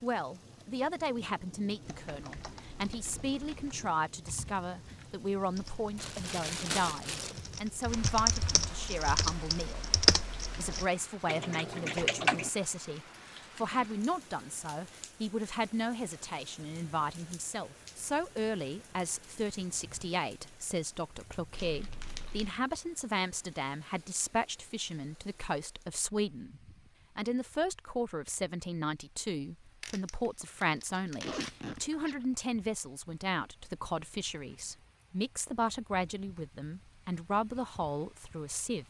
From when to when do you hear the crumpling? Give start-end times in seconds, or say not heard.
6.0-7.5, 21.5-22.6, 29.8-31.8.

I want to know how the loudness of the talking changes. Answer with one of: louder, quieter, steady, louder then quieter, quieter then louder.
steady.